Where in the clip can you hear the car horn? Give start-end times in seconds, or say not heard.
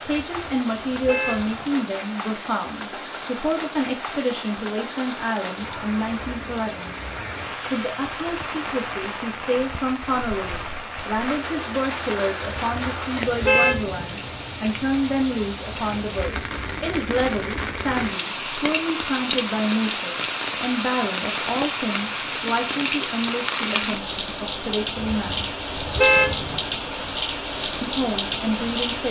0.1-1.8, 12.4-14.2, 24.9-26.6.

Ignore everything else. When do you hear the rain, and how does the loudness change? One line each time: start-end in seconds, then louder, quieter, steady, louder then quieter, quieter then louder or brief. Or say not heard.
0.0-29.0 louder.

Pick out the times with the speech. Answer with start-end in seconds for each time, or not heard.
0.0-7.0, 7.7-25.5, 27.8-29.0.